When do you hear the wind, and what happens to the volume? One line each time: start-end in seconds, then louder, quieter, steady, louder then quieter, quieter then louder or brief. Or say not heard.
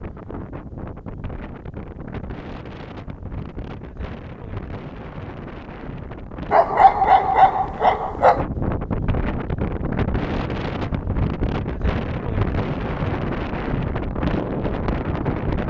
0.0-15.6 louder.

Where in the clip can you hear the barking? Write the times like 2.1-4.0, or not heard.
6.5-8.4.